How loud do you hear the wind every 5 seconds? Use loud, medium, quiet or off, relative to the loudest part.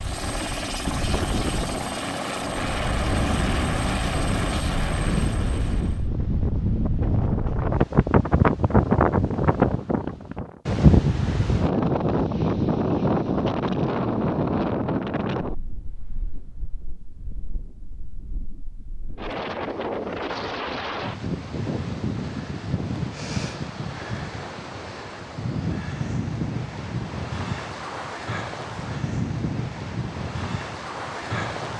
medium, loud, loud, quiet, medium, medium, medium.